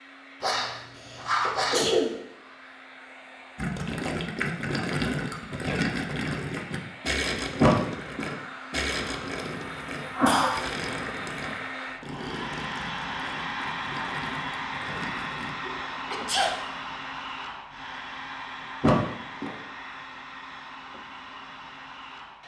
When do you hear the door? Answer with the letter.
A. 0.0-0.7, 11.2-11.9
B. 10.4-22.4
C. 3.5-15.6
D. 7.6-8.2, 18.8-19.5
D.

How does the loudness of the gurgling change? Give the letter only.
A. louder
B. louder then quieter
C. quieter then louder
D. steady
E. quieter
E.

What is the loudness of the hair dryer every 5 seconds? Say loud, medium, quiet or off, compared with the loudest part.
quiet, medium, loud, loud, medium.